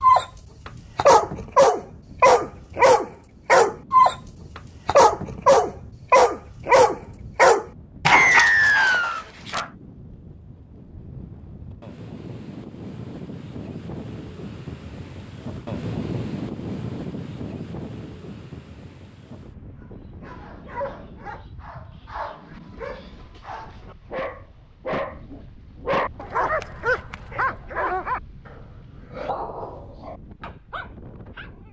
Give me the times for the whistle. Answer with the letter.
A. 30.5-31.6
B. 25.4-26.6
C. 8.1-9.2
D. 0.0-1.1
C.